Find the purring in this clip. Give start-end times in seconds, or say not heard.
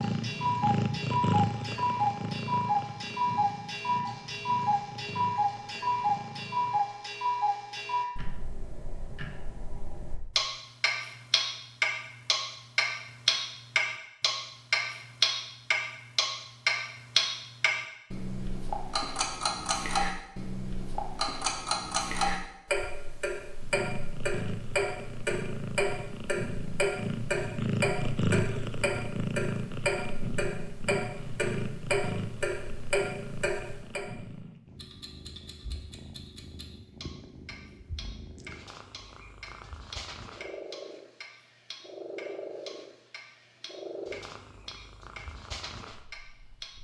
0.0-6.8, 23.6-46.7.